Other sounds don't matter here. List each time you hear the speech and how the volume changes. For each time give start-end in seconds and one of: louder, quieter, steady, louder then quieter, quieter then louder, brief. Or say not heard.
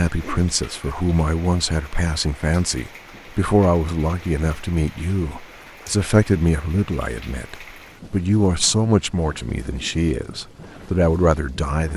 0.0-11.9 steady.